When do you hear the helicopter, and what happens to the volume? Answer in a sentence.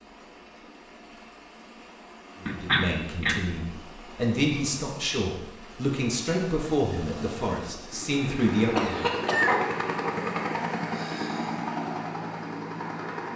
The helicopter can be heard from 0.0 to 13.3 s, getting louder.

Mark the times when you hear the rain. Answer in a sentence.
You can't hear the rain here.